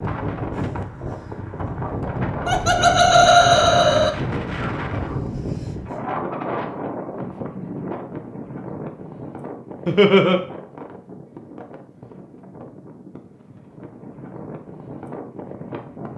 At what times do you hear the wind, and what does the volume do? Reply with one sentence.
The wind can be heard from 0.0 to 16.1 s, getting quieter.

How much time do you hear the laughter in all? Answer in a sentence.
You can hear the laughter for 2 seconds altogether.